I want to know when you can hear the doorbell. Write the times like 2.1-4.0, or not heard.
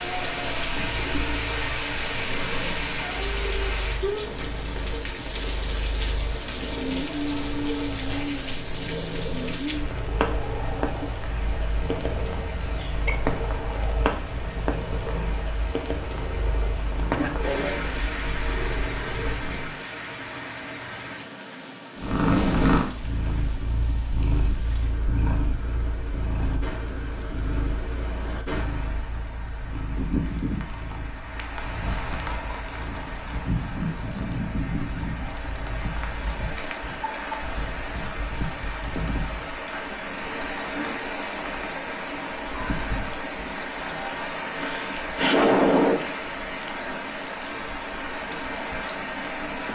not heard.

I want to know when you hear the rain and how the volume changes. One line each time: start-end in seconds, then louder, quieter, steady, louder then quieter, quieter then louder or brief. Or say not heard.
0.0-49.7 quieter then louder.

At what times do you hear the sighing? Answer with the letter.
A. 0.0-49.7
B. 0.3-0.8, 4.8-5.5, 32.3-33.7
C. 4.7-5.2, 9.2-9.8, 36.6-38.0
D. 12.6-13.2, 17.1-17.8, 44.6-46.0
D.